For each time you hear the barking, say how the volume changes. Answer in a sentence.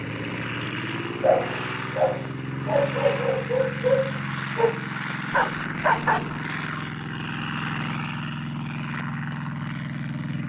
You can hear the barking from 1.2 to 6.4 s, at a steady volume.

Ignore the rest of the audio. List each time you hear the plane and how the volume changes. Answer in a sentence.
You can hear the plane from 0.0 to 10.4 s, at a steady volume.